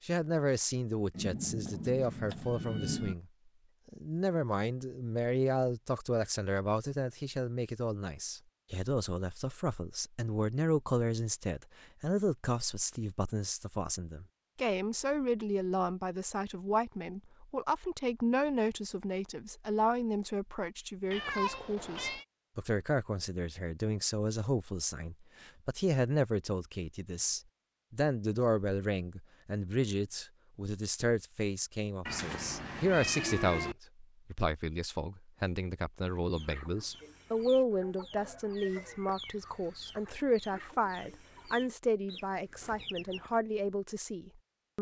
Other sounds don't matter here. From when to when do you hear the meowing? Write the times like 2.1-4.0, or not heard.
1.1-3.1, 21.1-22.2, 32.0-33.8.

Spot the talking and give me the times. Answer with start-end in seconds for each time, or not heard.
0.0-3.2, 3.9-44.7.